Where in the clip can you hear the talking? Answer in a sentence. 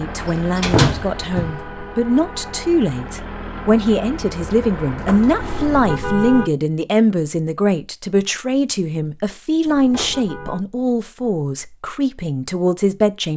You can hear the talking from 0.0 to 13.3 s.